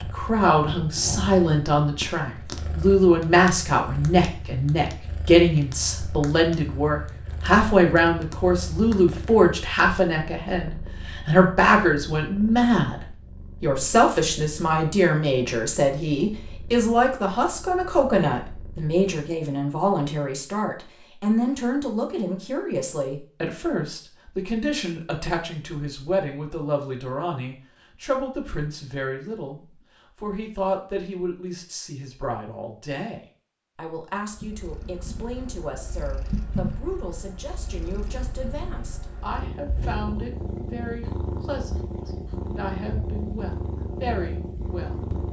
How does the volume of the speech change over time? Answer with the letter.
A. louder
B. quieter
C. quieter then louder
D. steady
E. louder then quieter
B.